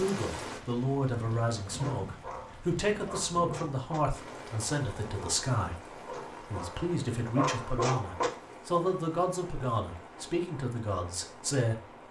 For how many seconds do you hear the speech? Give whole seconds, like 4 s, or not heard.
12 s.